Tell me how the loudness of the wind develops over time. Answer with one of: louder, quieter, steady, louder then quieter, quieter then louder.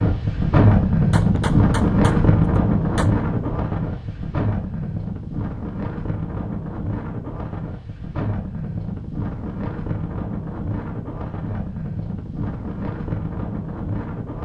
quieter.